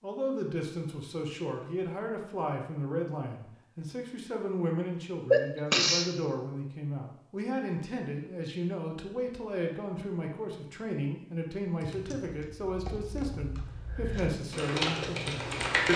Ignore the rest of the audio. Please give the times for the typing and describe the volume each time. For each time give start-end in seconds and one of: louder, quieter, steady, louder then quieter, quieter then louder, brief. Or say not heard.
11.8-15.9 louder.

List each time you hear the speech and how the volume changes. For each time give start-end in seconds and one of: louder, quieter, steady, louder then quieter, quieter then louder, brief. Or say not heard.
0.0-15.9 steady.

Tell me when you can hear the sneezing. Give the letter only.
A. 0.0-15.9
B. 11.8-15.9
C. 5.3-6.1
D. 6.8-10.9
C.